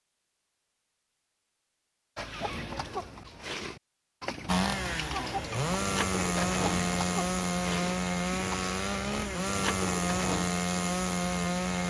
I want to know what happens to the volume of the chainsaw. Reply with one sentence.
The volume of the chainsaw stays about the same.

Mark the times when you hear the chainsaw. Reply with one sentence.
You can hear the chainsaw from 4.5 to 11.8 s.